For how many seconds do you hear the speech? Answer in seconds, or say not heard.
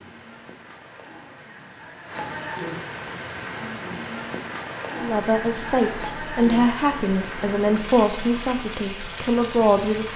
5 s.